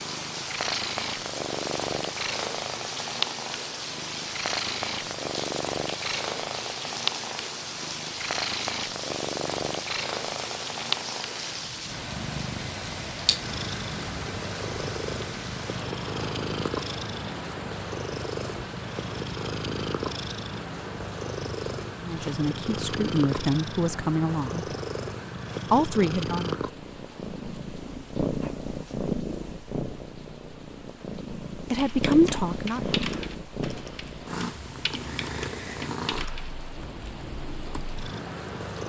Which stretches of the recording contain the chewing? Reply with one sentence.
The chewing can't be heard in this clip.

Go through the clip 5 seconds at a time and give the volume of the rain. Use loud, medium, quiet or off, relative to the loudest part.
loud, loud, loud, loud, medium, quiet, quiet, medium.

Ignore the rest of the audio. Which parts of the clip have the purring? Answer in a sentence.
You can hear the purring from 0.0 to 38.8 s.